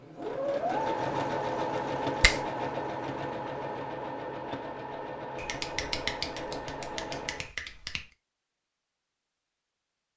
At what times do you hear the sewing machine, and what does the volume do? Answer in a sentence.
You can hear the sewing machine from 0.0 to 7.5 s, getting quieter.